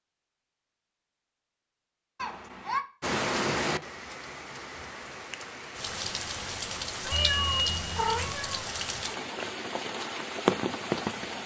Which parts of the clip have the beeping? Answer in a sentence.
You can hear the beeping from 7.1 to 8.4 s.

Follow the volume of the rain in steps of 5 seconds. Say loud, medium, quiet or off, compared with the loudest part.
loud, medium, loud.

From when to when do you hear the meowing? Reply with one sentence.
The meowing can be heard from 2.1 to 2.9 s and from 7.0 to 8.6 s.